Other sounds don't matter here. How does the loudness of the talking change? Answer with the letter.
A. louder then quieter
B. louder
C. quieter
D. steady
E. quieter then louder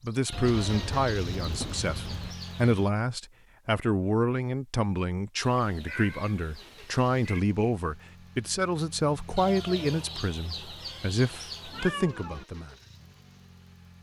D.